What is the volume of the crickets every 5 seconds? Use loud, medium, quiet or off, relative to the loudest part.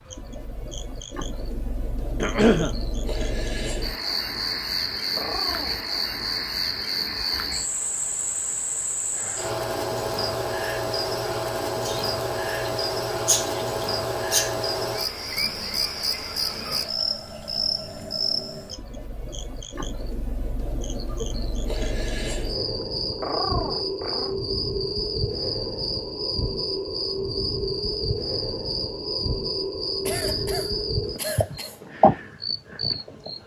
medium, loud, loud, loud, loud, loud, loud.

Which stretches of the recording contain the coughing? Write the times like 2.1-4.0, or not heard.
2.2-2.8, 11.8-14.6, 30.1-31.8.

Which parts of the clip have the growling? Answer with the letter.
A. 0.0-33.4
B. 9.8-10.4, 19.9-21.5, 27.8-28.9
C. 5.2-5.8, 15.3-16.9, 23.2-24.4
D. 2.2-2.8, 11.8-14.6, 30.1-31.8
C.